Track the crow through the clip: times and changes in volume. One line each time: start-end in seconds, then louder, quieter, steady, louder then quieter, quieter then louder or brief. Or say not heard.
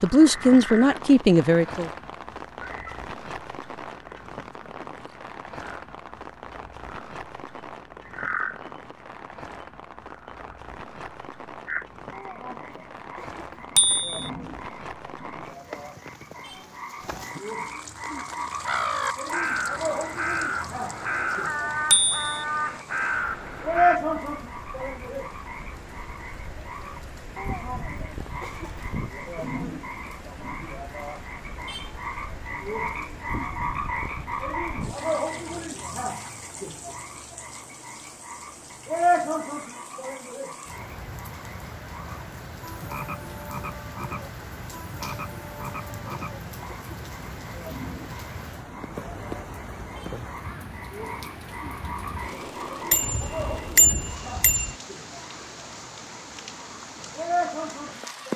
18.1-24.0 steady.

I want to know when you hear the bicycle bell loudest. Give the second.
54 s.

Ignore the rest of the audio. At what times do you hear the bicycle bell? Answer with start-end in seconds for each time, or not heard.
13.8-14.2, 21.9-22.4, 52.9-54.8.